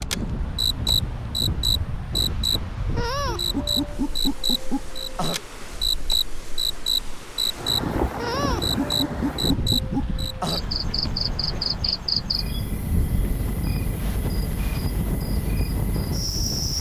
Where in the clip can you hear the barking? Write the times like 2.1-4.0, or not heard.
not heard.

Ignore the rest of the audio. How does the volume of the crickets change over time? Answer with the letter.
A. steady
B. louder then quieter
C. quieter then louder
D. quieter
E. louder
D.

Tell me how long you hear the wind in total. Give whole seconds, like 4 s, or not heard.
17 s.